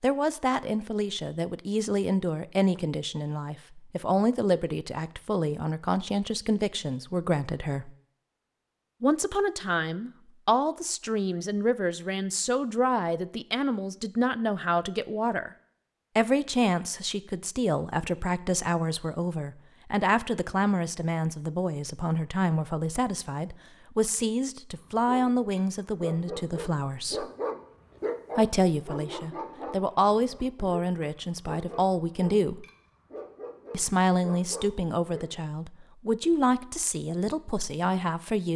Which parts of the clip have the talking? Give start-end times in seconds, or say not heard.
0.0-7.9, 9.0-15.5, 16.1-27.2, 28.4-32.6, 33.7-38.5.